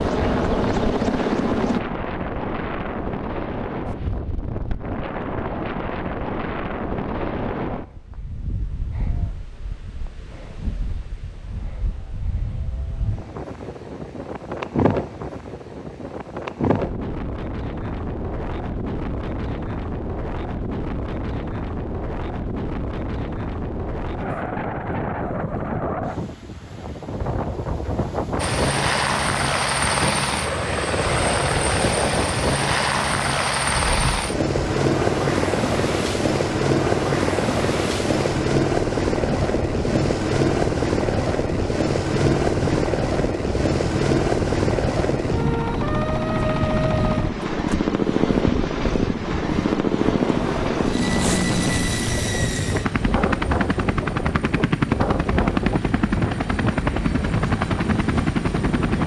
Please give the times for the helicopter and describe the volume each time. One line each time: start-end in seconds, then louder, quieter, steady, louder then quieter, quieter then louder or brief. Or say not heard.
0.0-1.8 brief
28.4-59.0 steady.